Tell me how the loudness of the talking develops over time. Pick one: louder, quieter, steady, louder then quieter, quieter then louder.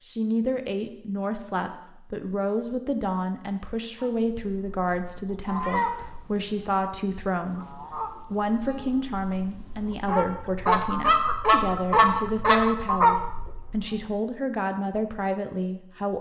steady.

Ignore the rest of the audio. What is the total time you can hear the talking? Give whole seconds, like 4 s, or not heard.
16 s.